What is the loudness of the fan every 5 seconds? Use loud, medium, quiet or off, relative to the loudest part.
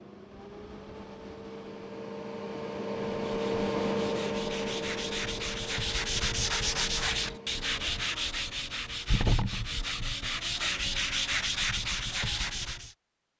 loud, medium, off.